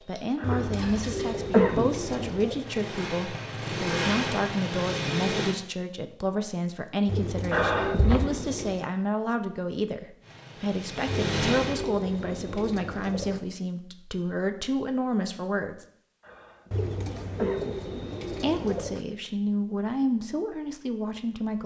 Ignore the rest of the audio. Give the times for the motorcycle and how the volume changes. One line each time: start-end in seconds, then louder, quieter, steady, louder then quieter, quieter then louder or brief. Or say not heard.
0.0-5.5 louder
10.2-11.9 brief.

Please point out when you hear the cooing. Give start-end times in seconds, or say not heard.
0.4-2.6, 7.0-8.8, 11.1-13.4, 16.7-19.1.